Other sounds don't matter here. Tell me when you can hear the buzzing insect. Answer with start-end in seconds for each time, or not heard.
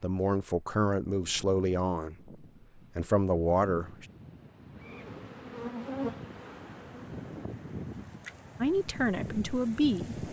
4.8-7.0.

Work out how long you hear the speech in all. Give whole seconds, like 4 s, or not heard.
6 s.